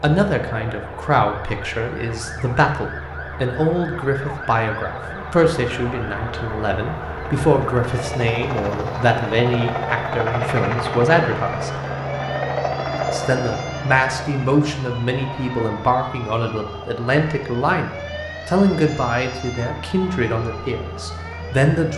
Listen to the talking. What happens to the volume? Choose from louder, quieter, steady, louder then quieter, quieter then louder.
steady.